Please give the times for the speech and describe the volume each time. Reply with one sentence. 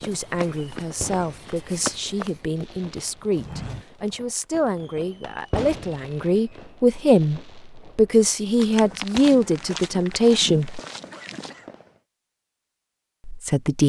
The speech can be heard from 0.0 to 10.8 s, getting louder; and briefly from 13.2 to 13.8 s.